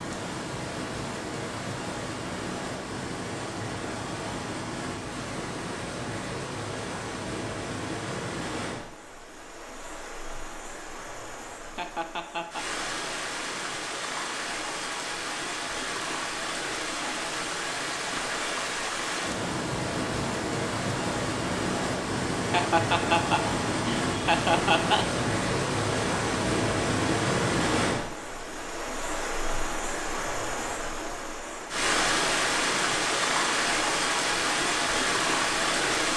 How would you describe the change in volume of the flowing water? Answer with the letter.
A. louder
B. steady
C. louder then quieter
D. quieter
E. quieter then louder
A.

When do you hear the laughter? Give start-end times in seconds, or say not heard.
11.8-12.7, 22.5-25.2.